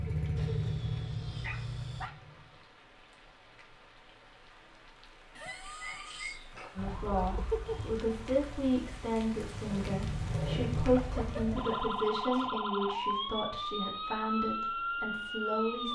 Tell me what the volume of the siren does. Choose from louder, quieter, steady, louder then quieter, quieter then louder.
quieter then louder.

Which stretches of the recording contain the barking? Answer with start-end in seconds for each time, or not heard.
0.3-2.1, 5.3-6.9, 10.9-12.5.